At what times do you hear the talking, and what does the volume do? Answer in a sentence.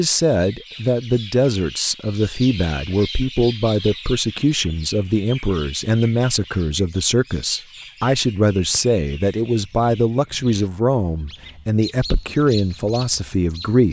The talking can be heard from 0.0 to 13.8 s, at a steady volume.